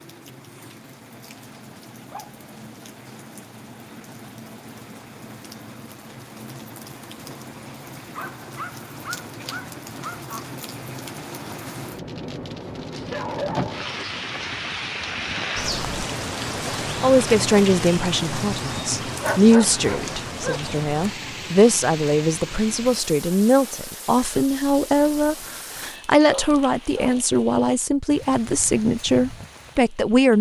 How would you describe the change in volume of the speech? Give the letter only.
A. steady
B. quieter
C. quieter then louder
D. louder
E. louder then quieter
A.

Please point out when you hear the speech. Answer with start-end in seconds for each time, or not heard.
17.0-30.3.